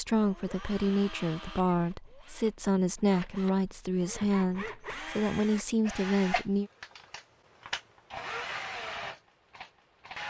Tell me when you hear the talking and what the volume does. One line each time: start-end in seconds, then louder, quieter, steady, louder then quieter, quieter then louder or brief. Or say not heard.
0.0-6.7 steady.